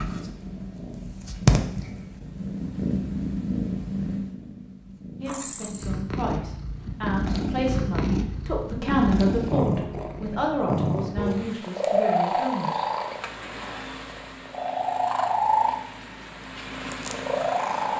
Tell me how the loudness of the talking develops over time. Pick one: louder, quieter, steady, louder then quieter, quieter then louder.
louder then quieter.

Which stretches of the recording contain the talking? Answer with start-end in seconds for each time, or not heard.
5.2-12.8.